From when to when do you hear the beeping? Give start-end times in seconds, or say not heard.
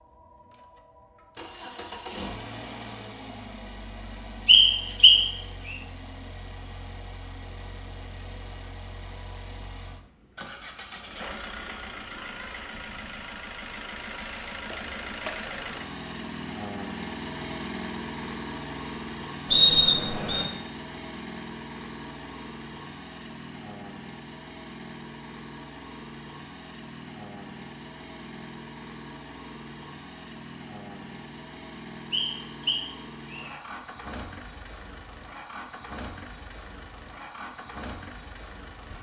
not heard.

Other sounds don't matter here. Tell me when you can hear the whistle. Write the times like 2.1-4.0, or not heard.
4.5-5.7, 19.5-20.4, 32.1-33.5.